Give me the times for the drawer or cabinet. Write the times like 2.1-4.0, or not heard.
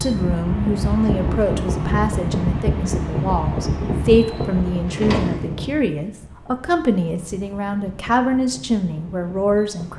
4.8-5.5.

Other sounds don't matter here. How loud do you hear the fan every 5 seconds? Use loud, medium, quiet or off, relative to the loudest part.
loud, medium.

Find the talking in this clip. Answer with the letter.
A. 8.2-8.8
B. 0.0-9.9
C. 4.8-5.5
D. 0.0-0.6
B.